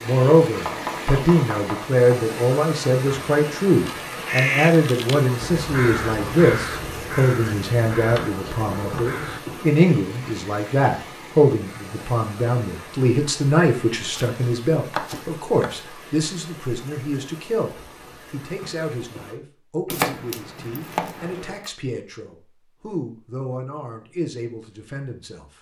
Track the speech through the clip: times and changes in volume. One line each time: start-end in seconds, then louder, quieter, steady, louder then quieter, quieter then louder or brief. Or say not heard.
0.0-25.5 quieter.